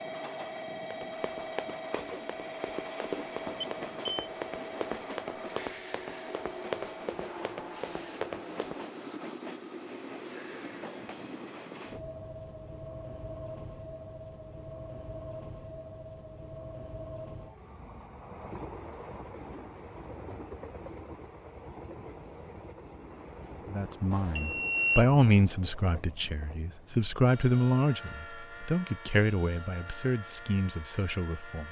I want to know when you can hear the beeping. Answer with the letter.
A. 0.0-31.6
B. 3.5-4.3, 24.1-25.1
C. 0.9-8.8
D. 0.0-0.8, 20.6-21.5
B.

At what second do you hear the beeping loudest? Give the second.
25 s.